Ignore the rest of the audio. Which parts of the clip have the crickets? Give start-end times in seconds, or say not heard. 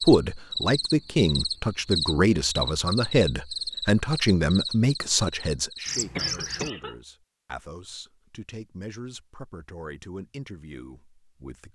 0.0-6.7.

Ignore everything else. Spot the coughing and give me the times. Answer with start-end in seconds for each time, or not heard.
6.2-7.0.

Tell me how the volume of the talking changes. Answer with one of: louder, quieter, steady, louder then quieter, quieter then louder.
quieter.